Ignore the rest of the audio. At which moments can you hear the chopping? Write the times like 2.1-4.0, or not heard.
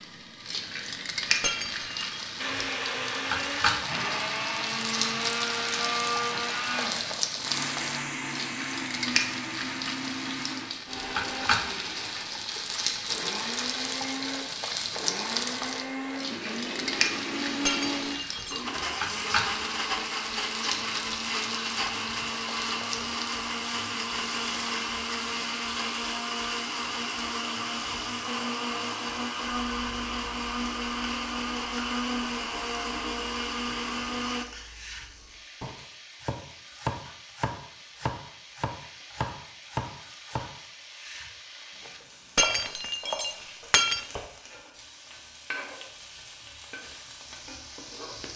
34.6-44.2.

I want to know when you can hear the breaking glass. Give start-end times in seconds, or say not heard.
1.4-2.2, 17.6-18.6, 42.4-44.0.